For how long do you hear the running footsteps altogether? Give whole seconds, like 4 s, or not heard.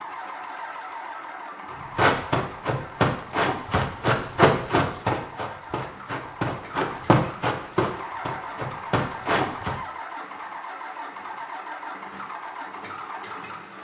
8 s.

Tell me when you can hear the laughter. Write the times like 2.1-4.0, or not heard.
not heard.